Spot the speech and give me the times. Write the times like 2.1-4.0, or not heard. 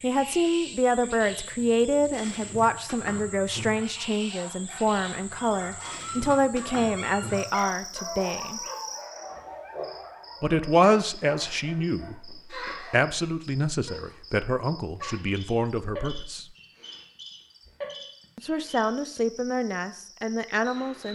0.0-8.6, 10.4-16.4, 18.4-21.0.